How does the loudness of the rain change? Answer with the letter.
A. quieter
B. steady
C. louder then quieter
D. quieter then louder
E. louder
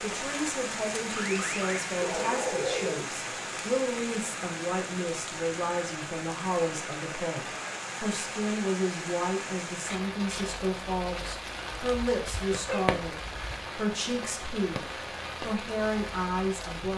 B.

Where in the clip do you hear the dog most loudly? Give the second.
3 s.